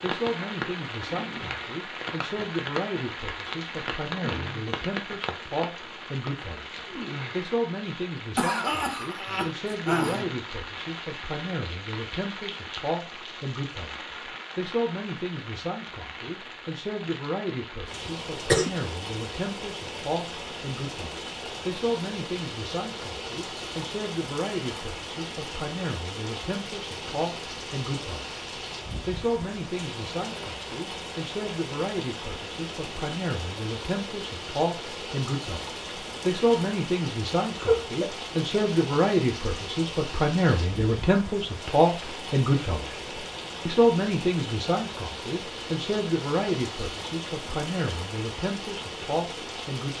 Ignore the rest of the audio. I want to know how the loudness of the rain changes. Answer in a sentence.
The loudness of the rain stays about the same.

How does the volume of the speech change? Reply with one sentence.
The volume of the speech goes up.